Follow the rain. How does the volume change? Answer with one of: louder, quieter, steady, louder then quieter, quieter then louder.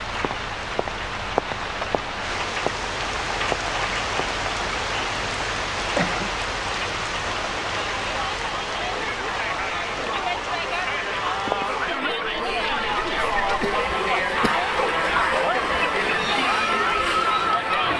quieter.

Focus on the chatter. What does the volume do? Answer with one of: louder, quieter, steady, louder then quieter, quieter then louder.
louder.